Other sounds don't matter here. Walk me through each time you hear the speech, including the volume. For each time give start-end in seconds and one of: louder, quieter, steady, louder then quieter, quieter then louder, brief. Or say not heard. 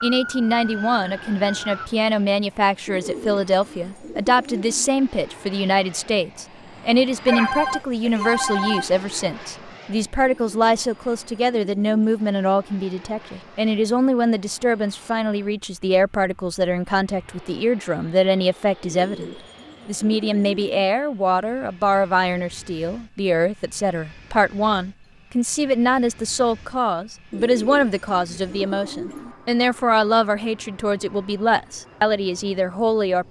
0.0-33.2 steady.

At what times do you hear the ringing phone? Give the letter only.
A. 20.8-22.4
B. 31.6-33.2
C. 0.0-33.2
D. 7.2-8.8
D.